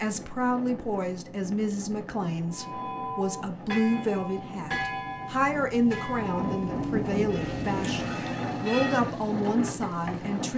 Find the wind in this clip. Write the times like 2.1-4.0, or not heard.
0.0-10.5.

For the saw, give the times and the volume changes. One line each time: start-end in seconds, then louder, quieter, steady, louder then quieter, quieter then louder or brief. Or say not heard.
not heard.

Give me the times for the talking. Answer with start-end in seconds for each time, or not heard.
0.0-10.5.